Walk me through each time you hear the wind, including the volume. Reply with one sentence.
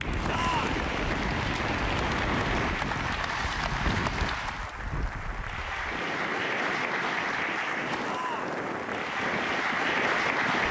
The wind can be heard from 0.0 to 10.6 s, getting quieter then louder.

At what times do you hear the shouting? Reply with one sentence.
The shouting can be heard from 0.2 to 0.8 s and from 8.0 to 8.6 s.